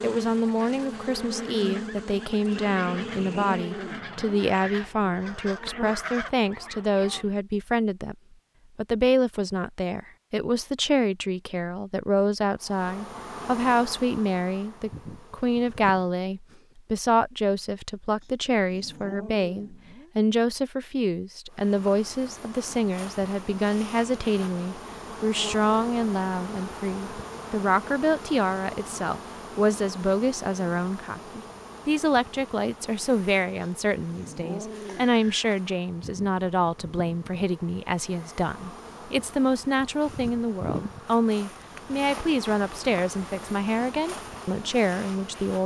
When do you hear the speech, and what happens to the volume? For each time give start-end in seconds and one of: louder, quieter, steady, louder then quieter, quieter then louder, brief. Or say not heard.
0.0-8.2 steady
8.8-45.6 steady.